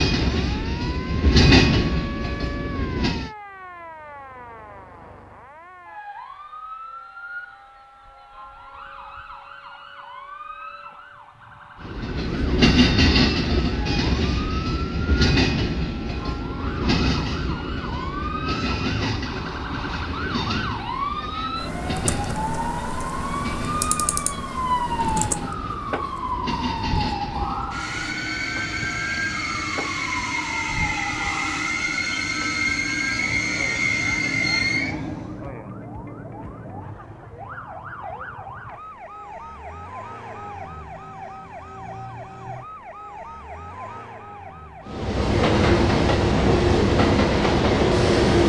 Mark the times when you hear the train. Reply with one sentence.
You can hear the train from 0.0 to 3.3 s, from 11.8 to 35.5 s and from 44.9 to 48.4 s.